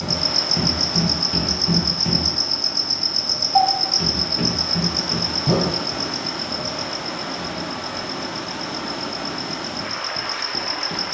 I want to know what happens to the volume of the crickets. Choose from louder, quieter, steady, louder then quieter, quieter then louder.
quieter.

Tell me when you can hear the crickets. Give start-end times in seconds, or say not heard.
0.0-11.0.